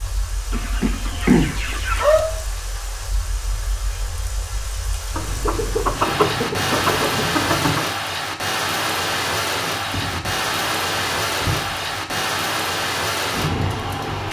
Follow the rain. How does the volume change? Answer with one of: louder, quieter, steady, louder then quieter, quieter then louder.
louder.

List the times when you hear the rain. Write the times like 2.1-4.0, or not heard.
0.0-14.2.